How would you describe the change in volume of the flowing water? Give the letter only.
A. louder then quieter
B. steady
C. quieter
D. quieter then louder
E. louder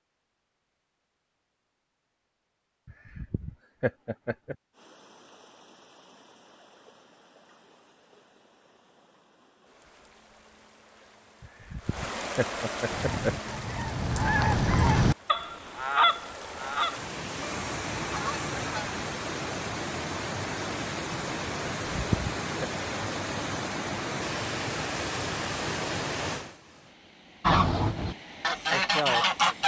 E.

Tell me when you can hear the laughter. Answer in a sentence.
The laughter can be heard from 2.9 to 4.5 s, from 11.4 to 13.4 s and from 21.9 to 22.7 s.